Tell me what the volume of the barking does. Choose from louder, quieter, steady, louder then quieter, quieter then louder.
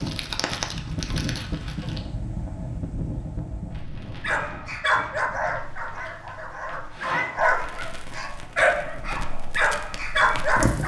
quieter then louder.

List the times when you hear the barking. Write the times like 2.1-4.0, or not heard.
4.2-10.8.